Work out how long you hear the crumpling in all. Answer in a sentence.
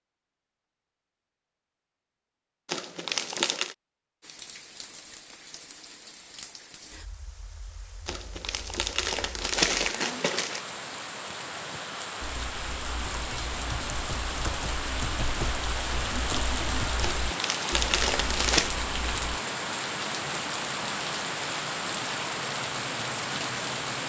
You can hear the crumpling for 5 seconds altogether.